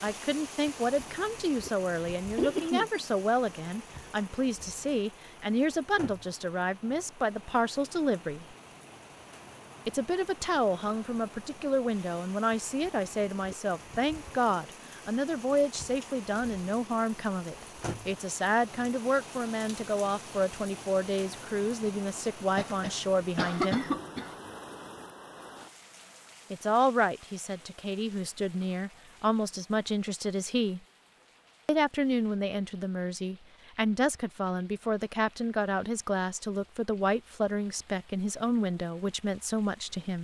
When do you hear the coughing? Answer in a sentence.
You can hear the coughing from 2.4 to 3.0 s and from 22.6 to 24.4 s.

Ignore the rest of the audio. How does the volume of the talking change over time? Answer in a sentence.
The loudness of the talking stays about the same.